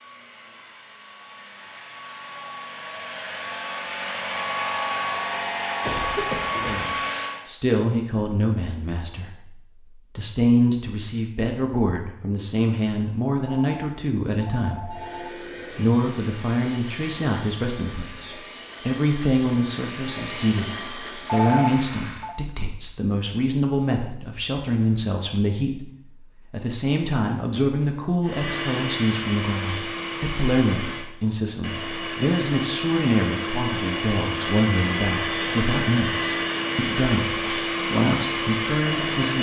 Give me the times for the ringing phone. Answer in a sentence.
The ringing phone can be heard from 13.5 to 15.3 s and from 21.2 to 22.4 s.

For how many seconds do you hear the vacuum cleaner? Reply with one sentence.
You can hear the vacuum cleaner for 26 seconds altogether.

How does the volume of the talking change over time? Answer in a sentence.
The volume of the talking stays about the same.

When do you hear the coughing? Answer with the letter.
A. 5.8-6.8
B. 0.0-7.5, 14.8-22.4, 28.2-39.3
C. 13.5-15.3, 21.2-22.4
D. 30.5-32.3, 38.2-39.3
A.